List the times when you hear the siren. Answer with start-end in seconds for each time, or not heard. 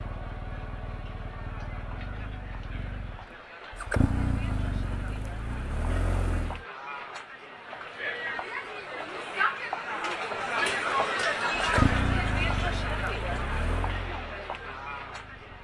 not heard.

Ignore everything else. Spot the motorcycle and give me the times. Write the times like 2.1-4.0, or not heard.
0.0-6.7, 11.6-15.5.